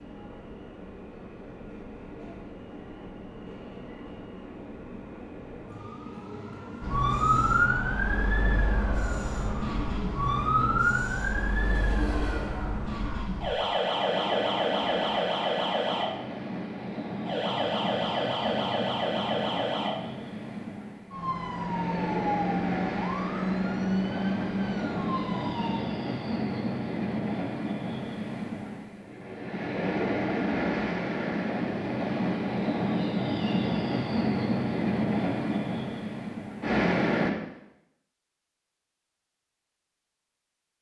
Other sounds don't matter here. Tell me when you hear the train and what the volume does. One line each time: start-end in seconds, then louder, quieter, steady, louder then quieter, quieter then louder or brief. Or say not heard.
0.0-37.3 louder.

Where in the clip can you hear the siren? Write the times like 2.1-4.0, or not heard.
6.8-25.8.